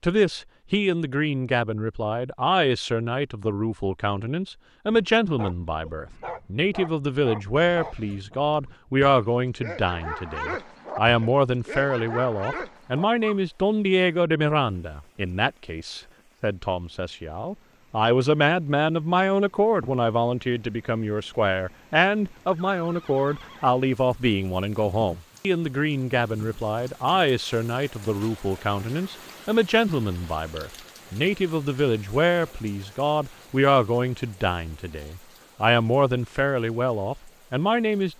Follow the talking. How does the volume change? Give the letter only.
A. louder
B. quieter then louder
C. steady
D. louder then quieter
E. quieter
C.